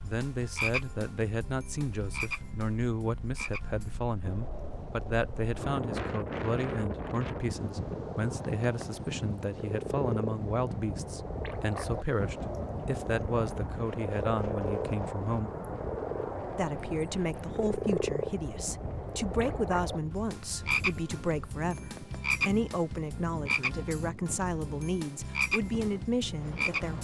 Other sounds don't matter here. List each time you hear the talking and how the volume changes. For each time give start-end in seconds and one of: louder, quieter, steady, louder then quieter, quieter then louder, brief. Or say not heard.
0.0-15.5 steady
16.6-26.9 steady.